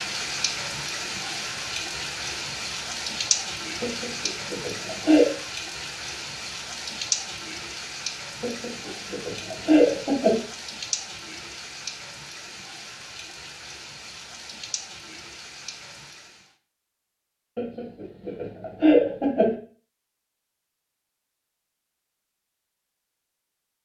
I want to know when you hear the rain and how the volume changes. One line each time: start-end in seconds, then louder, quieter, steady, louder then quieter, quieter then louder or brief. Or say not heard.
0.0-16.5 quieter.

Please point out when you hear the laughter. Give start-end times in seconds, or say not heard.
3.8-5.3, 8.4-10.4, 17.6-19.6.